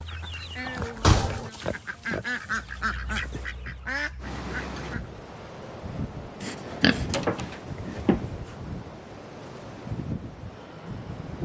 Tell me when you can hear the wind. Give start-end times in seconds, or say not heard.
4.2-11.4.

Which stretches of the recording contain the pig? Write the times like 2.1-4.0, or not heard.
0.3-2.9, 6.4-8.3.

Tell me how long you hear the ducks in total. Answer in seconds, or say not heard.
5 s.